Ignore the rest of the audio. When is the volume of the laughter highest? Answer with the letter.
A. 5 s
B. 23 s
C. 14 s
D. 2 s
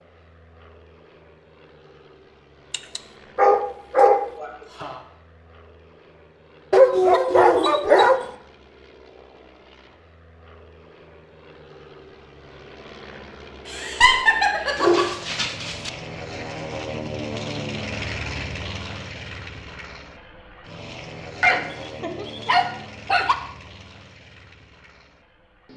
C.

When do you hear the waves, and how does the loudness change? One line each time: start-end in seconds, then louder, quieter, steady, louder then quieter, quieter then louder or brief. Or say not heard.
not heard.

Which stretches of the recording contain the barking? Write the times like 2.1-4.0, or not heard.
2.7-4.2, 6.7-8.2, 14.8-15.9, 21.4-23.4.